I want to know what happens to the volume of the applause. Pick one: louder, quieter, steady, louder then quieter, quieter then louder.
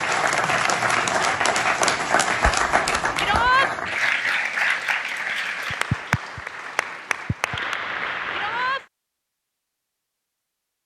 quieter.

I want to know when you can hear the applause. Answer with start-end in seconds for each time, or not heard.
0.0-8.8.